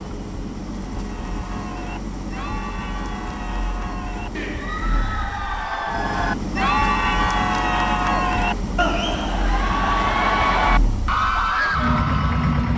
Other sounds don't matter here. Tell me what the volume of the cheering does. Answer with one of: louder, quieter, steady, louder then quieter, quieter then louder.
louder.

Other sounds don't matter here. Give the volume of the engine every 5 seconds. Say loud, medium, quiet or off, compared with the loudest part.
medium, loud, loud.